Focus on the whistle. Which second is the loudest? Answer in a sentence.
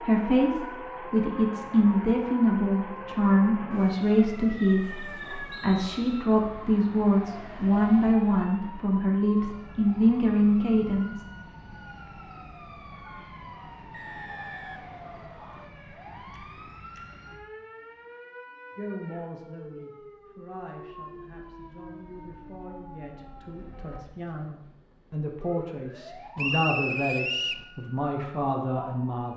The volume of the whistle peaks at 27 seconds.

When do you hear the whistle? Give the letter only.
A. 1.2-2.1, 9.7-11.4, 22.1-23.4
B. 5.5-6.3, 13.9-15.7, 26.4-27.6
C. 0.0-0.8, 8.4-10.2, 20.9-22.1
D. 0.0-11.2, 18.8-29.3
B.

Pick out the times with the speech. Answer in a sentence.
You can hear the speech from 0.0 to 11.2 s and from 18.8 to 29.3 s.